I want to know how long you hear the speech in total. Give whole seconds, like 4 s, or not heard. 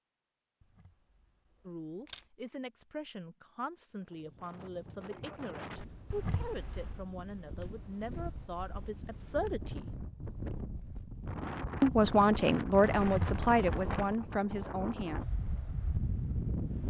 12 s.